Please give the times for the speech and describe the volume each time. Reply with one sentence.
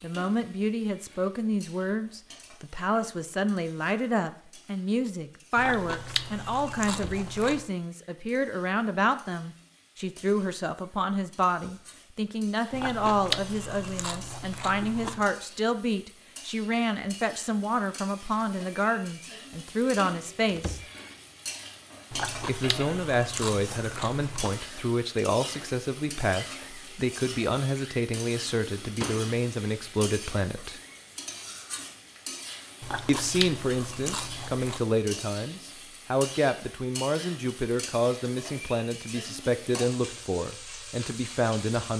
You can hear the speech from 0.0 to 20.8 s, at a steady volume; from 22.4 to 30.8 s, at a steady volume; and from 33.0 to 41.9 s, at a steady volume.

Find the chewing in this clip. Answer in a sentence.
You can hear the chewing from 5.5 to 7.7 s, from 12.7 to 15.3 s, from 22.1 to 24.6 s and from 32.8 to 34.9 s.